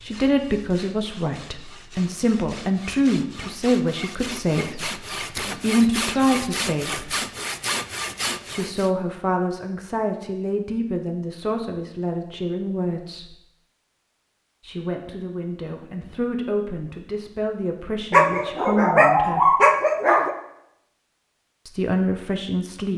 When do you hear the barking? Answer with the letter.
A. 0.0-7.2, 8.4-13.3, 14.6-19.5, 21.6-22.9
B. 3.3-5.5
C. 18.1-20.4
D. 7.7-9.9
C.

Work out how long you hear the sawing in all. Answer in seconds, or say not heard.
9 s.